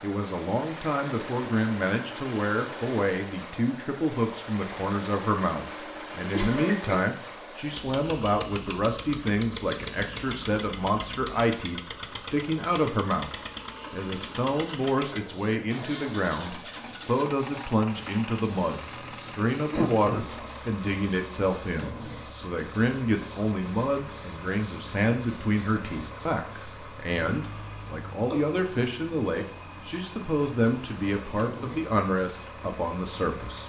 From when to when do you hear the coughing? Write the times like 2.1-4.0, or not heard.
6.3-7.0, 19.7-20.3, 28.3-29.4.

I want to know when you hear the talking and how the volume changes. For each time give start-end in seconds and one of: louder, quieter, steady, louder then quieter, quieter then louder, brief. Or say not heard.
0.0-13.3 steady
13.9-33.6 steady.